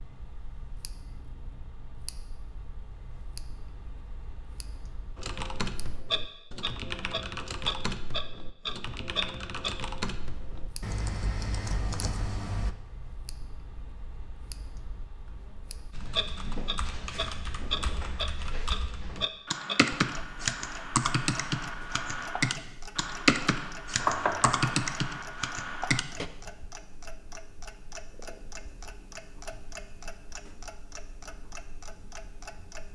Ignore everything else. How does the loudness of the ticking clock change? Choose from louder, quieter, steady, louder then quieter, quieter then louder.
louder then quieter.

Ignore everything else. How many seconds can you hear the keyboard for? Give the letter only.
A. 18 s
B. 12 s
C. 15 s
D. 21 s
A.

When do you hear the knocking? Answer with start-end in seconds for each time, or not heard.
23.9-24.9.